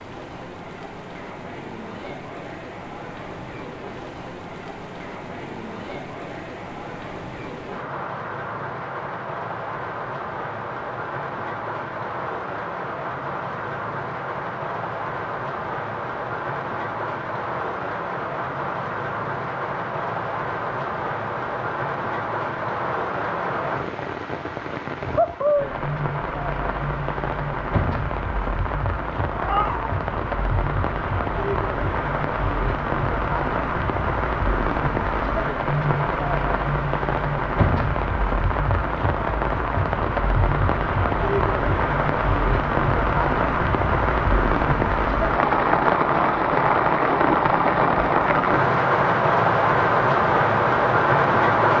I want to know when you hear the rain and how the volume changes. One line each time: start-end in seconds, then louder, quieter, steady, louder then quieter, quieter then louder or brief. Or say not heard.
0.0-51.7 louder.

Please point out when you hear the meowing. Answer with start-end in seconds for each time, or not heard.
29.4-29.9.